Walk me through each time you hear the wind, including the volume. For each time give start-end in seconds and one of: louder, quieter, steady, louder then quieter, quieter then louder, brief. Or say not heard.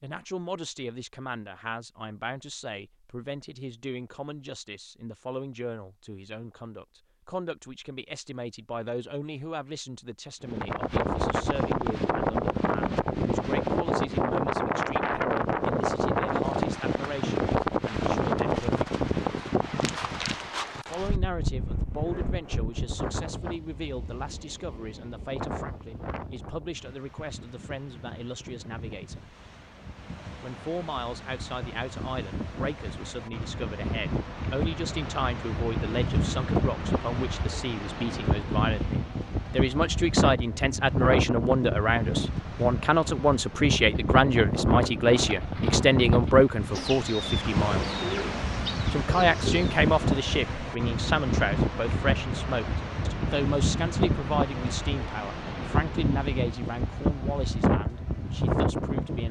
10.4-59.2 quieter then louder.